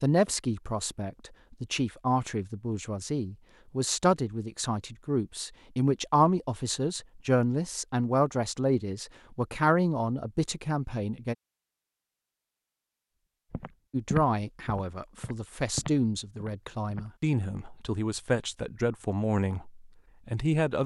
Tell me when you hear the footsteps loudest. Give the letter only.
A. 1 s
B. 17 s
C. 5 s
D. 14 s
D.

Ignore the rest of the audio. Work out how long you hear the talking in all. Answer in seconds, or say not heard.
18 s.